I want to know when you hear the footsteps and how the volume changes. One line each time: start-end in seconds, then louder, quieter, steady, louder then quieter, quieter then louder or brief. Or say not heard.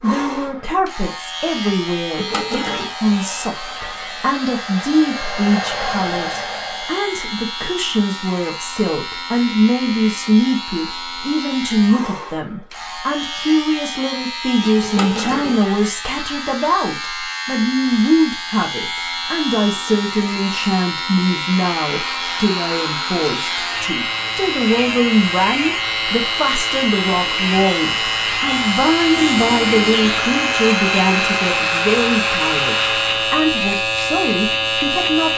not heard.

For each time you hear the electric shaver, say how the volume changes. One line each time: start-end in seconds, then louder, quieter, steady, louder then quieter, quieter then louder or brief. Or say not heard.
0.0-35.3 louder.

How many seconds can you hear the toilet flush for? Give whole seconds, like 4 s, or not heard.
3 s.